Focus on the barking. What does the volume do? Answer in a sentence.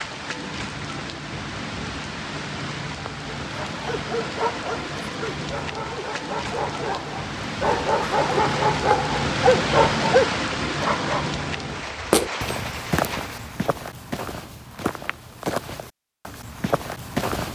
The loudness of the barking goes up.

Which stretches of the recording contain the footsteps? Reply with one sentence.
The footsteps can be heard from 11.8 to 17.5 s.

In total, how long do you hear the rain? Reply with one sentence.
You can hear the rain for 14 seconds altogether.